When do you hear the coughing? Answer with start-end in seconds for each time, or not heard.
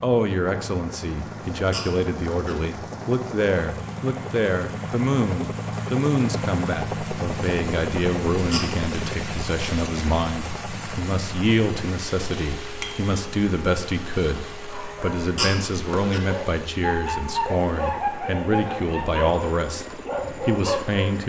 1.7-2.5, 8.5-9.1, 15.3-16.2.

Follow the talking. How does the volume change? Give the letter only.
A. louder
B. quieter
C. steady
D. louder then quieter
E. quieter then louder
C.